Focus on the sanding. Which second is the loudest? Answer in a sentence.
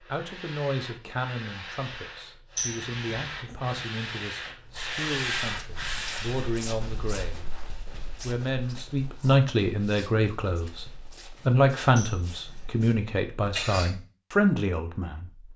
The volume of the sanding peaks at 5 seconds.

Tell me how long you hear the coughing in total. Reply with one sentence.
The coughing can be heard for 3 seconds in total.